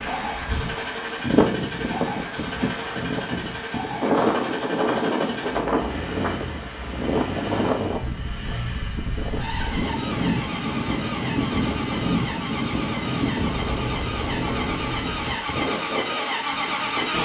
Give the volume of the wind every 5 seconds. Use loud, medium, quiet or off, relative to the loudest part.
loud, loud, loud, medium.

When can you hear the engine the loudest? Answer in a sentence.
The volume of the engine peaks at 17 seconds.